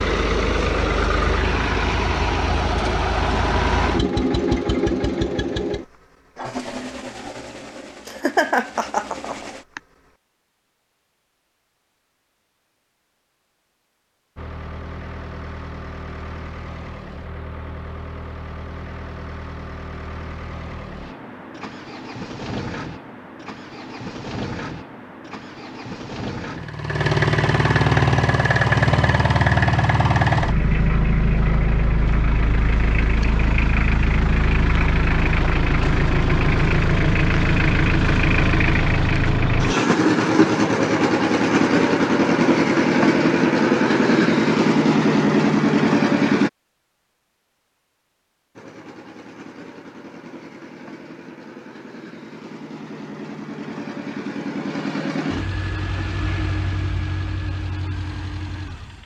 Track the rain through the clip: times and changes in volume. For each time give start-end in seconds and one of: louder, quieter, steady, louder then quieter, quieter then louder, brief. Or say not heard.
not heard.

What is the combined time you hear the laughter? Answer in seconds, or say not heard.
2 s.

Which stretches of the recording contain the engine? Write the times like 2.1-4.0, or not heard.
0.0-9.9, 14.3-46.5, 48.5-59.0.